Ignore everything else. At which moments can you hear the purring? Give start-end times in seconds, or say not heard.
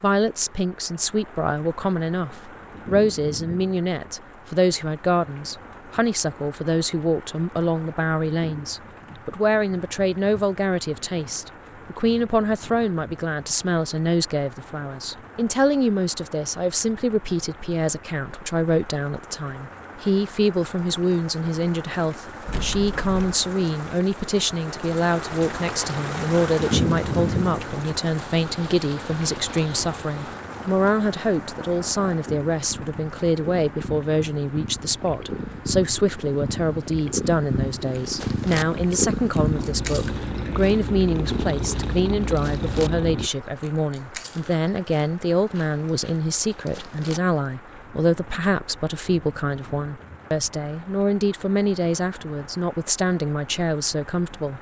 28.1-43.3.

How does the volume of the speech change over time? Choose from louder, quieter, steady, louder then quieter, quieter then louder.
steady.